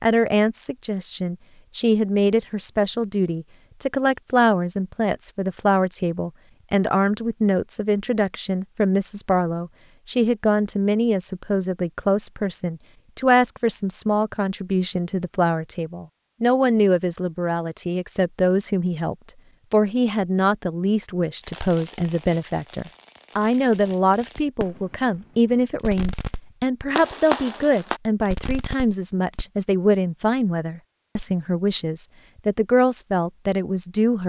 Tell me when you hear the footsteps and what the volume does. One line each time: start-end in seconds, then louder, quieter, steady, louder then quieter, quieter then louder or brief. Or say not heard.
not heard.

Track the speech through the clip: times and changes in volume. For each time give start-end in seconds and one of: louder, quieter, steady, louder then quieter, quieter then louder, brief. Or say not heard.
0.0-34.2 steady.